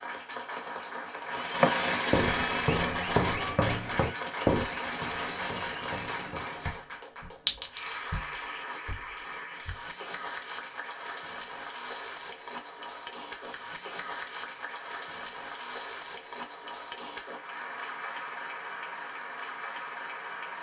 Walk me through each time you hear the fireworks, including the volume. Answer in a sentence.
You can hear the fireworks from 1.2 to 6.8 s, getting quieter.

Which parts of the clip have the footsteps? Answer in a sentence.
The footsteps can be heard from 1.6 to 9.9 s.